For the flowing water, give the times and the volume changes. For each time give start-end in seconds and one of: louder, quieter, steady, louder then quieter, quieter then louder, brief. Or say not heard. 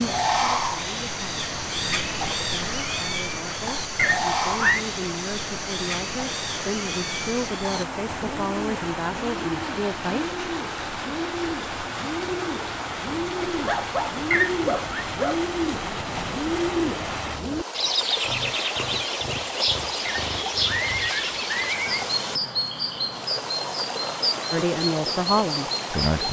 0.0-26.2 steady.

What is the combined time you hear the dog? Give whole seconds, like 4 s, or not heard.
2 s.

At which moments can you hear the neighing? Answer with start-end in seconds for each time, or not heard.
4.0-4.8, 14.3-15.1, 20.1-22.1.